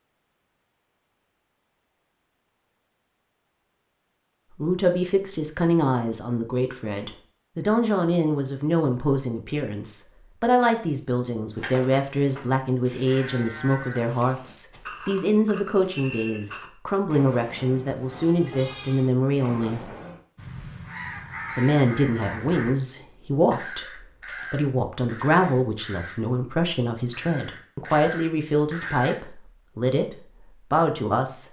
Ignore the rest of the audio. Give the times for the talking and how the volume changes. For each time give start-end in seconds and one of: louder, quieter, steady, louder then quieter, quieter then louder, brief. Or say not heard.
4.5-19.9 steady
21.6-31.4 steady.